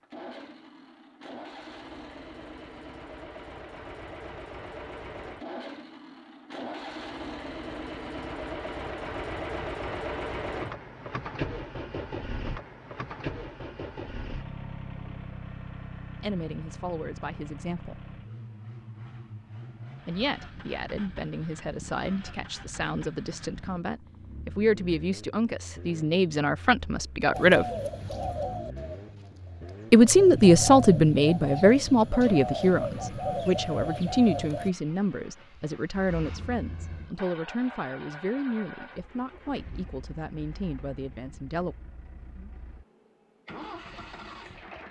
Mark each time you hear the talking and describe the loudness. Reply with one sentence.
The talking can be heard briefly from 16.2 to 18.0 s; from 20.1 to 27.6 s, getting louder; and from 29.9 to 41.8 s, getting quieter.